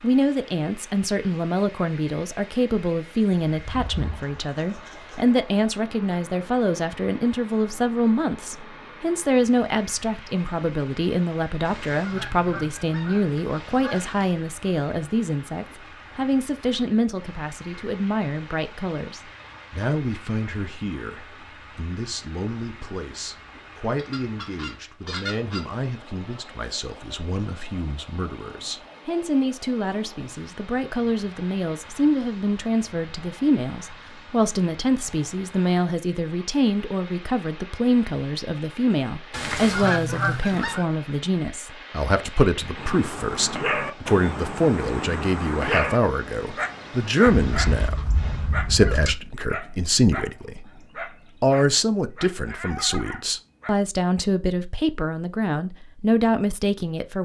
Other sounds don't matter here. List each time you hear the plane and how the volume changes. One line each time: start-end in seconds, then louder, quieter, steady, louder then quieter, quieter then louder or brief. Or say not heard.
not heard.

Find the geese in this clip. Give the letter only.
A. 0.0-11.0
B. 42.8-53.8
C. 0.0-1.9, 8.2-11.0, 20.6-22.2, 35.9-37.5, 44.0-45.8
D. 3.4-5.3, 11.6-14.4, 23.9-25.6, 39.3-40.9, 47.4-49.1
D.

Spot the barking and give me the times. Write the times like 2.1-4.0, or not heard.
42.8-53.8.